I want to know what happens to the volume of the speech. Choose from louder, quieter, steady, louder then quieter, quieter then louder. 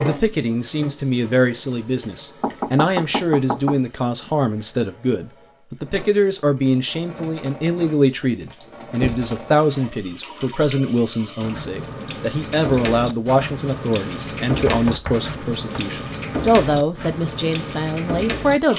steady.